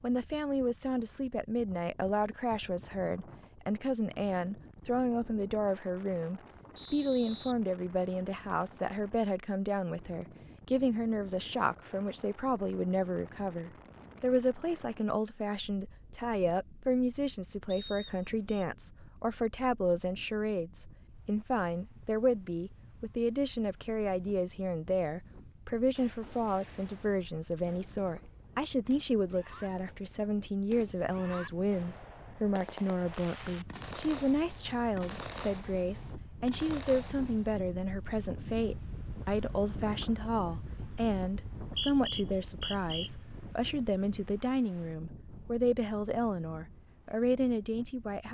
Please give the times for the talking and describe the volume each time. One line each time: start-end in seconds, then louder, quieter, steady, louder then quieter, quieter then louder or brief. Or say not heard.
0.0-48.2 steady.